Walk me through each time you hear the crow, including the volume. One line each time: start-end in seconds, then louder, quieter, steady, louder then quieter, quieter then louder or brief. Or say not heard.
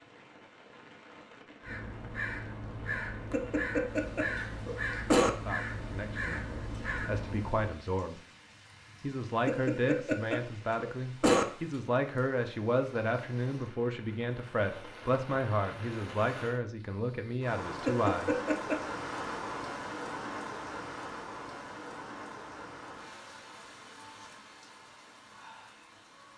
1.6-7.7 steady.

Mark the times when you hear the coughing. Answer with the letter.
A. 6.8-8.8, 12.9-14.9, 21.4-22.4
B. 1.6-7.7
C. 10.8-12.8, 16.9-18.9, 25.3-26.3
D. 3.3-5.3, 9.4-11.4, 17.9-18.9
D.